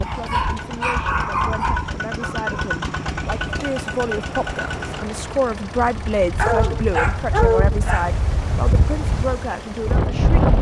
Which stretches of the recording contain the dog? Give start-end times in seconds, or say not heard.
0.0-2.7, 6.3-8.1.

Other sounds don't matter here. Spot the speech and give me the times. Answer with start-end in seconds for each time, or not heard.
0.0-10.4.